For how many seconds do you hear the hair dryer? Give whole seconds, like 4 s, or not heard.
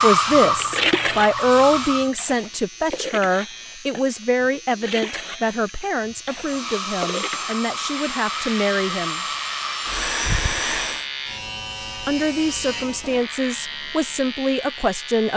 7 s.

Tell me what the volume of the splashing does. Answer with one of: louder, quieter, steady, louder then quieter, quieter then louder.
quieter then louder.